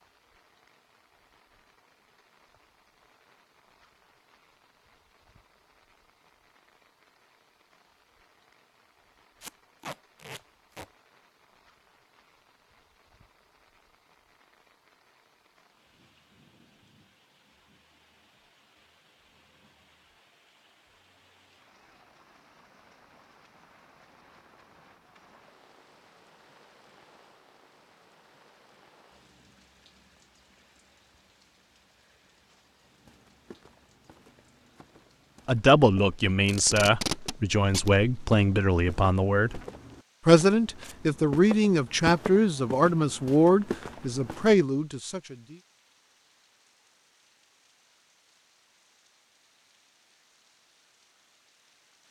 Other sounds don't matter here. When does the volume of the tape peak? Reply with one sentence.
The loudest moment of the tape is at 37 seconds.